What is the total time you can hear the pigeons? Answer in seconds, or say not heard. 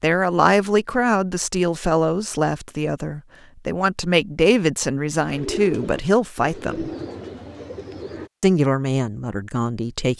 3 s.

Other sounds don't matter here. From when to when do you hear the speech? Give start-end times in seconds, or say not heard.
0.0-6.9, 8.4-10.1.